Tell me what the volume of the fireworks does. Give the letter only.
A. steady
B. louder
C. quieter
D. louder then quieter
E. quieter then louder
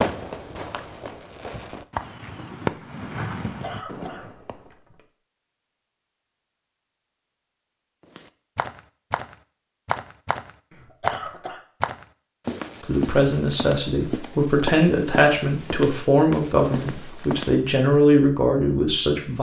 D.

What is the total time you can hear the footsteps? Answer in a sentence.
The footsteps can be heard for 10 seconds in total.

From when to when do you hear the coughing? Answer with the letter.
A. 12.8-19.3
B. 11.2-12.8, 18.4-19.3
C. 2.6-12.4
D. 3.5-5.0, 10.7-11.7
D.